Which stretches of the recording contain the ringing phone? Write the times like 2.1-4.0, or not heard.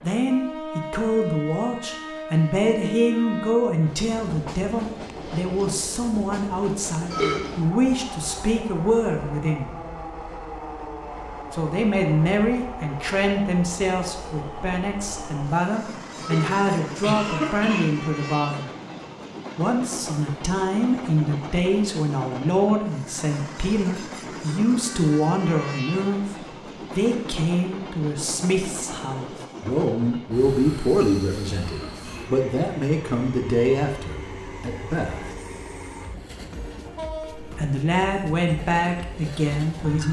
not heard.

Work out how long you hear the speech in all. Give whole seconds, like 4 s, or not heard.
35 s.